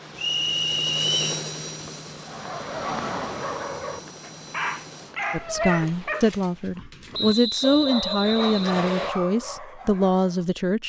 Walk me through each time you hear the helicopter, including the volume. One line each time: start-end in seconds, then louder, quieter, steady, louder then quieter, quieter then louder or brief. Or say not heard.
0.0-5.2 quieter.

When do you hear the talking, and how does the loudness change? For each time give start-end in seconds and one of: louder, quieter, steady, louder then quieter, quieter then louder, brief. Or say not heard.
5.3-10.8 steady.